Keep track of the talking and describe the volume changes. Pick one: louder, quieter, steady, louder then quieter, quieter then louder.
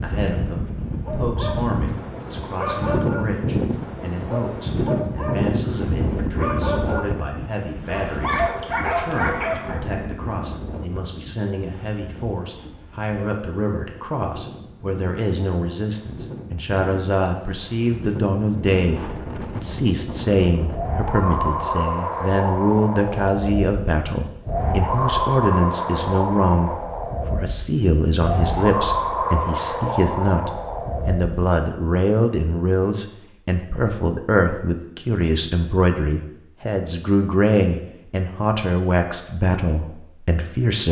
louder.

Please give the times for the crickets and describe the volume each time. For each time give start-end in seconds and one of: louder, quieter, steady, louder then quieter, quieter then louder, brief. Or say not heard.
not heard.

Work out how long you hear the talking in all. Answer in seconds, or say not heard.
41 s.